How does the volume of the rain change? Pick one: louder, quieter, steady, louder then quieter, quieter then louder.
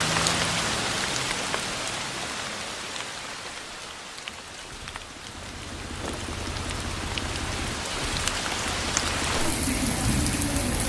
quieter then louder.